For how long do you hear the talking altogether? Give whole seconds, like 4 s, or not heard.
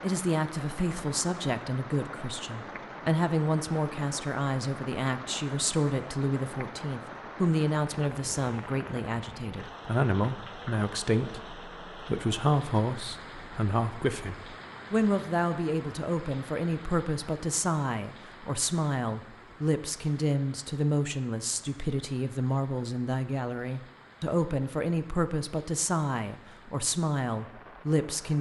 28 s.